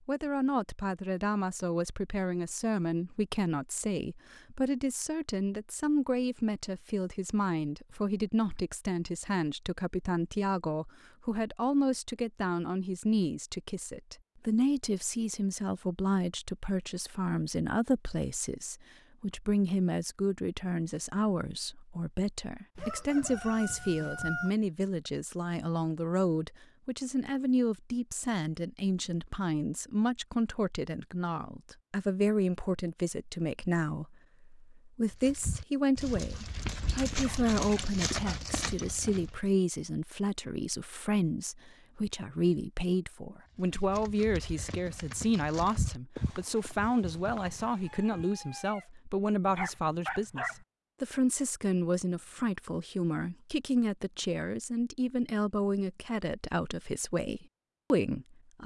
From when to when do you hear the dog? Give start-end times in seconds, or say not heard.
49.5-50.6.